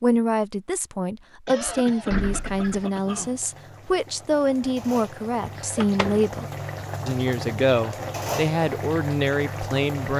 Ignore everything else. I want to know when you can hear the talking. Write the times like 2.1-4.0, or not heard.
0.0-6.5, 7.0-10.1.